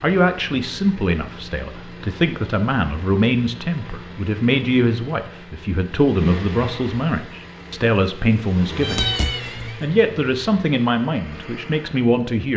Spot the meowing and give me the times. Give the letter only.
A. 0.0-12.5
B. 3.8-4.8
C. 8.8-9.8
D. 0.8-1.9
C.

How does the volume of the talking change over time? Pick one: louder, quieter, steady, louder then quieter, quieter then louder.
steady.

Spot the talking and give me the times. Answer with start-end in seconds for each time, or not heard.
0.0-12.5.